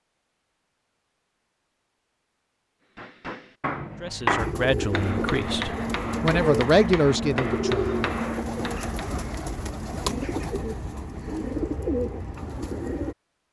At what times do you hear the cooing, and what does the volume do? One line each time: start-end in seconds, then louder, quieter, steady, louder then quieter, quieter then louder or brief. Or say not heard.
4.3-13.2 steady.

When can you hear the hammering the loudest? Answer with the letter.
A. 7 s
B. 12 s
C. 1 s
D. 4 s
D.